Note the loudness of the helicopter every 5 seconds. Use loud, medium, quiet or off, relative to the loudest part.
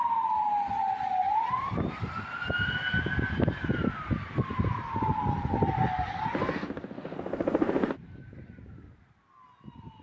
off, loud.